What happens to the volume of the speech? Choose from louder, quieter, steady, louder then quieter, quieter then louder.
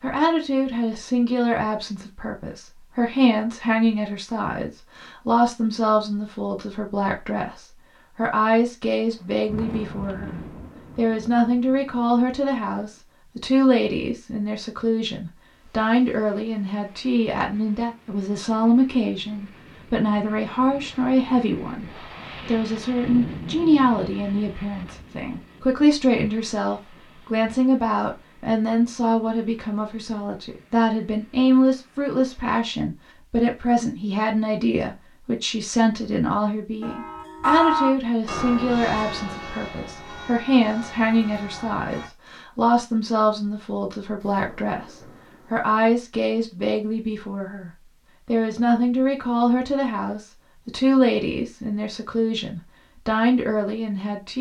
steady.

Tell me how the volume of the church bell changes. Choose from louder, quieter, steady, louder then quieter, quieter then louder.
quieter.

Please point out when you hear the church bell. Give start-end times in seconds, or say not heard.
36.8-42.1.